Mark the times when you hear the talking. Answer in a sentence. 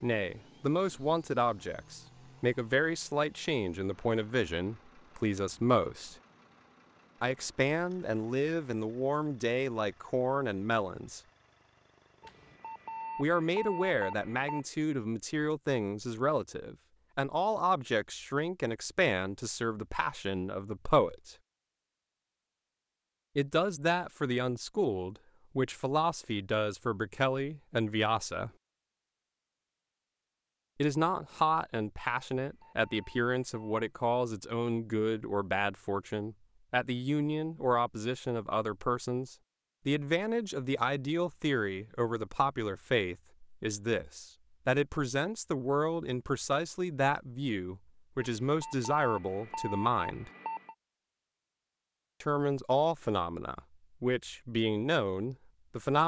The talking can be heard from 0.0 to 6.2 s, from 7.2 to 11.2 s, from 13.2 to 21.4 s, from 23.4 to 28.5 s, from 30.8 to 50.3 s and from 52.2 to 56.0 s.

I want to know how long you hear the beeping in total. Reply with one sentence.
The beeping can be heard for 6 seconds in total.